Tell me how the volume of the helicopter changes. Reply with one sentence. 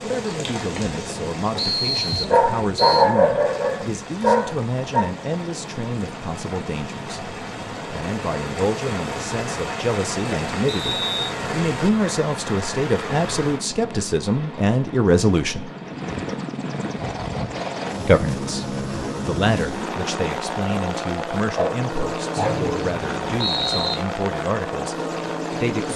The volume of the helicopter goes up.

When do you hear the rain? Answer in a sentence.
The rain can be heard from 0.0 to 13.6 s.